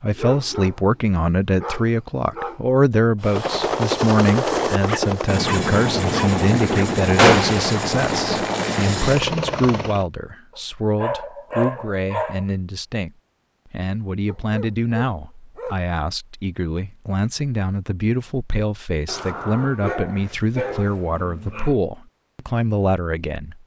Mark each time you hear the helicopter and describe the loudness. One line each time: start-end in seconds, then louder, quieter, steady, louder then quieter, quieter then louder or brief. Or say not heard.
3.2-10.1 steady.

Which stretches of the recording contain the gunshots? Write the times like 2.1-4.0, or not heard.
7.2-7.7.